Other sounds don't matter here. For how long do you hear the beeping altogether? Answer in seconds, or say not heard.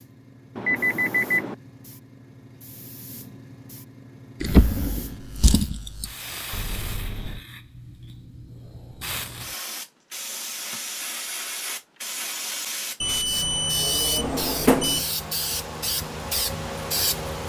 4 s.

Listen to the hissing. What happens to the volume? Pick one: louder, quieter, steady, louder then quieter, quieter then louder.
louder.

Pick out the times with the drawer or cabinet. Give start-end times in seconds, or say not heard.
4.4-6.1, 14.2-15.0.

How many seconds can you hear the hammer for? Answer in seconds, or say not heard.
not heard.